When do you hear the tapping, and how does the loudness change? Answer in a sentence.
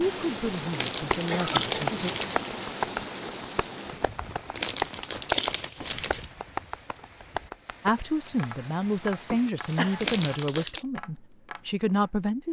You can hear the tapping from 0.9 to 12.1 s, getting quieter.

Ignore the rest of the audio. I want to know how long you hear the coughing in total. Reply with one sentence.
The coughing can be heard for 2 seconds in total.